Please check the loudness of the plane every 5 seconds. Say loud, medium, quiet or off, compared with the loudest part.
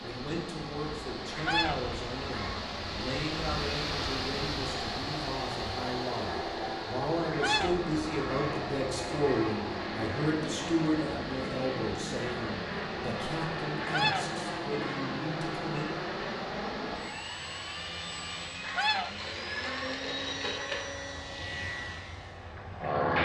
medium, loud, loud, loud, loud.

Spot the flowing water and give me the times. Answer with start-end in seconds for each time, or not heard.
0.0-18.6.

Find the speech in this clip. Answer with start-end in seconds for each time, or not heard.
0.0-15.9.